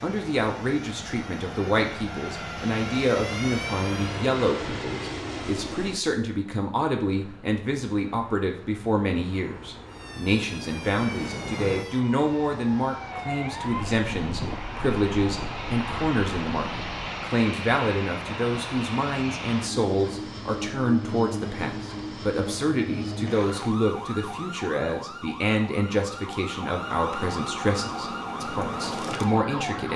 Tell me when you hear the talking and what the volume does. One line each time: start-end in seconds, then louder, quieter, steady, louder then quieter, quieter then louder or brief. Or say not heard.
0.0-29.9 steady.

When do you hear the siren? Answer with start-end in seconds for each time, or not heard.
0.0-4.2, 9.8-17.1, 23.4-29.9.